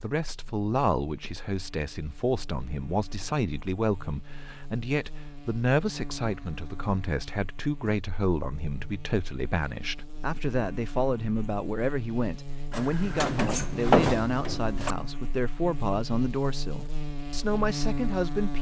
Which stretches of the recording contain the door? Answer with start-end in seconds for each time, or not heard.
12.7-14.9.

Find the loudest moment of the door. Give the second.
14 s.